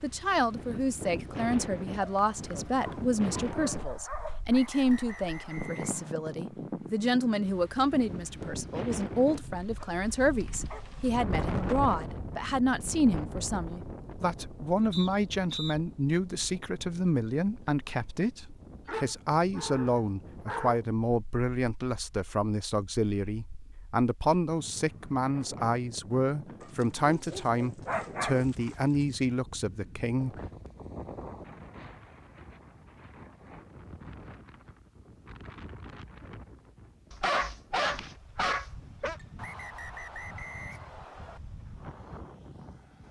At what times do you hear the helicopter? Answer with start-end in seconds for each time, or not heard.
not heard.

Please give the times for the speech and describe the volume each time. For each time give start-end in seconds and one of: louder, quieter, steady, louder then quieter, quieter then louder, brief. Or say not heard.
0.0-30.4 steady.